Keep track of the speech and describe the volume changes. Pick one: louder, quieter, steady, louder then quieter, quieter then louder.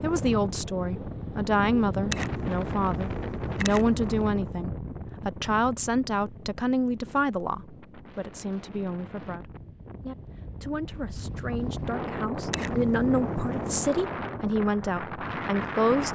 quieter then louder.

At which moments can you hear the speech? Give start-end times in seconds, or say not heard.
0.0-16.0.